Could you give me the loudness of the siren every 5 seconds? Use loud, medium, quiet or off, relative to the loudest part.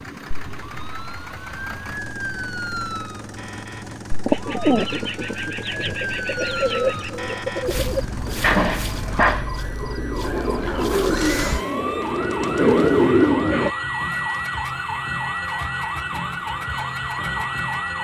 medium, medium, loud, loud.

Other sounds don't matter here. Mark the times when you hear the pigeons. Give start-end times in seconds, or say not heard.
4.2-13.7.